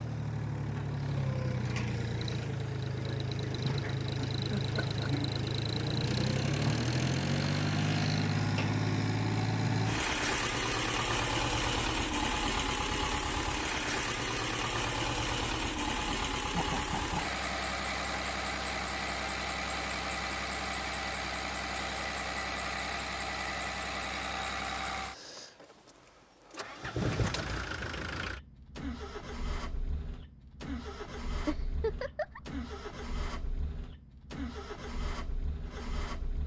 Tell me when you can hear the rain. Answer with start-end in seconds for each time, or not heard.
not heard.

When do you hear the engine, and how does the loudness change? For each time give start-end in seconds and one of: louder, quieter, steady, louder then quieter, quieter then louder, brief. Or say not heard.
0.0-36.4 quieter.